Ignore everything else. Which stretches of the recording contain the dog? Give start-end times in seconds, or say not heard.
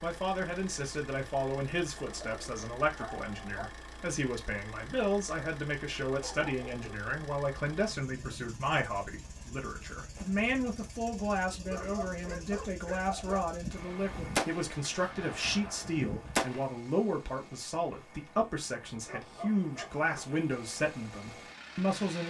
1.9-3.7, 6.2-7.0, 11.7-13.4, 19.1-20.2.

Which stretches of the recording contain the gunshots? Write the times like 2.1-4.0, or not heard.
13.6-16.6.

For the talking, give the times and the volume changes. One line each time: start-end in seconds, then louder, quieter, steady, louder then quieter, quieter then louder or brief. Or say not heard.
0.0-22.2 steady.